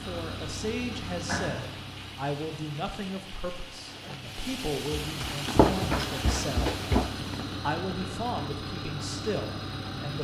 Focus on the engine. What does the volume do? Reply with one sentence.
The volume of the engine goes down, then up.